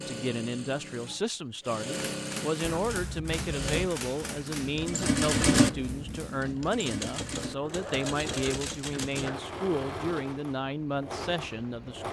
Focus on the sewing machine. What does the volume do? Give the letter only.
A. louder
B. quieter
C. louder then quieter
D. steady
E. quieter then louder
C.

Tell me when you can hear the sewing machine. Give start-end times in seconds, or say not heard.
0.0-12.0.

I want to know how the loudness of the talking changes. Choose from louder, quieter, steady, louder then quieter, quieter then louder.
steady.